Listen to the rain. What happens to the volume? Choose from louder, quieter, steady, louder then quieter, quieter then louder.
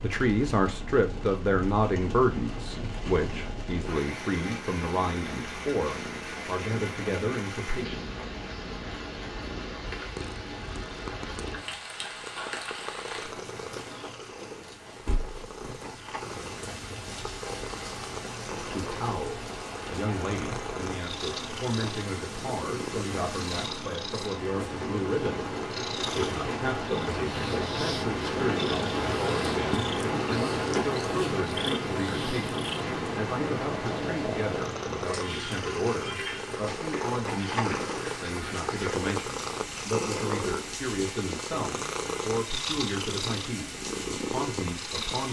louder then quieter.